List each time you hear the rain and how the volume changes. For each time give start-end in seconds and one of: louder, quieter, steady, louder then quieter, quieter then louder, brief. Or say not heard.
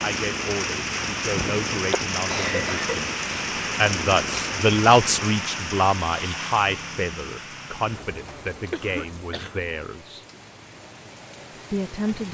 0.0-12.3 quieter.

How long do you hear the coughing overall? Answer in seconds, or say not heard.
2 s.